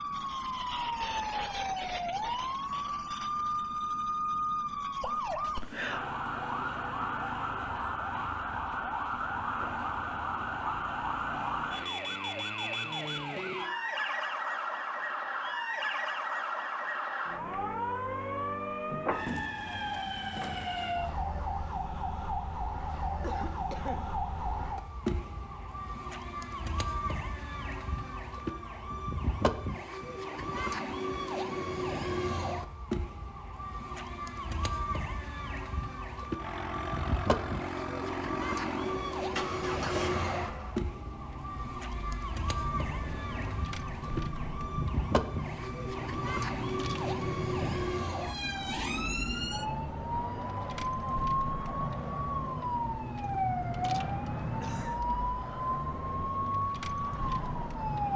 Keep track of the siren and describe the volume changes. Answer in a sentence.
The volume of the siren stays about the same.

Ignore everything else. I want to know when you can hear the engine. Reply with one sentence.
You can hear the engine from 36.4 to 58.1 s.